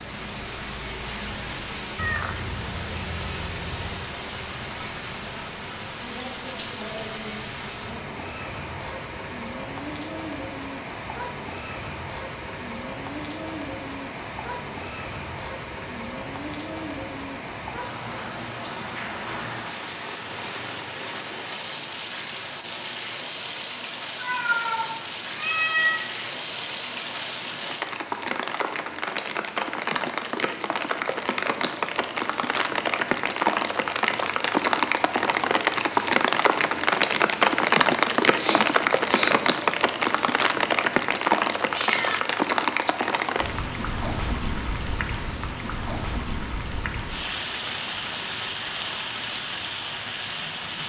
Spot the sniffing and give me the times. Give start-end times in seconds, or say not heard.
38.4-39.4.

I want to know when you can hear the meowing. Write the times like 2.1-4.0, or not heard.
1.9-4.0, 24.1-26.1, 41.7-43.2.